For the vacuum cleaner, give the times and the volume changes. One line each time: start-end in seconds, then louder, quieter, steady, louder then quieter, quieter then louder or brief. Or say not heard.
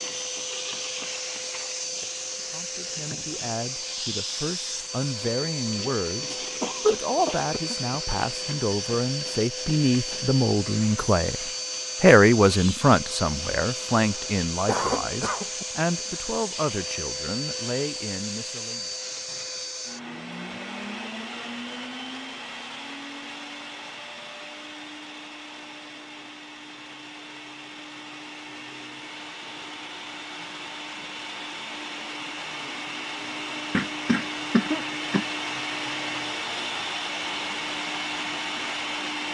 0.0-39.2 quieter then louder.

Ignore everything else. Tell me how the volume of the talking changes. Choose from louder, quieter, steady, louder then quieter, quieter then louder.
louder then quieter.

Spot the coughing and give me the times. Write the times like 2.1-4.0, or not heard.
6.6-8.0, 14.1-15.7, 33.7-35.2.